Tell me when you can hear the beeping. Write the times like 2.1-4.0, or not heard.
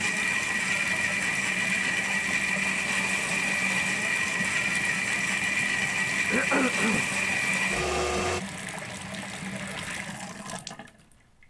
not heard.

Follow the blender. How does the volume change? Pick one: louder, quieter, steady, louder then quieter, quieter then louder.
steady.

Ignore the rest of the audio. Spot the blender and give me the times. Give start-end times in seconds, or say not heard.
0.0-8.4.